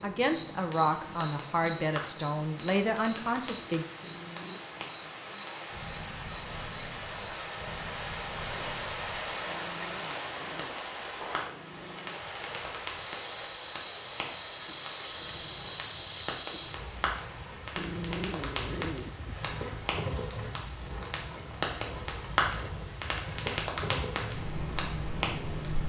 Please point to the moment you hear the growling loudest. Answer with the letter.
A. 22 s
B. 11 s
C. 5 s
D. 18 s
D.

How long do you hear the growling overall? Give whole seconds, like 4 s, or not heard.
5 s.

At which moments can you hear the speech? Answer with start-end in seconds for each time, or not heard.
0.0-3.9.